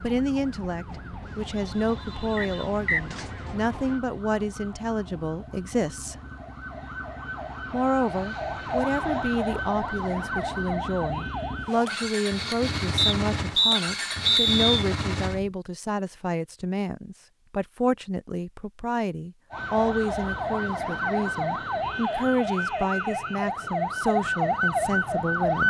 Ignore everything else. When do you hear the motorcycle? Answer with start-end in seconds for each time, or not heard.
0.0-15.6.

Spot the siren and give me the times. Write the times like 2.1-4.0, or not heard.
0.0-12.1, 19.5-25.6.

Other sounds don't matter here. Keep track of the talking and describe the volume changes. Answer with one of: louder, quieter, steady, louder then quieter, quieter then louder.
steady.